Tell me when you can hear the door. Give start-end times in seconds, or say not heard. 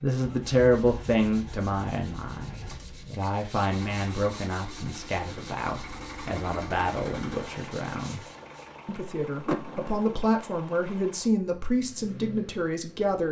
9.4-10.3.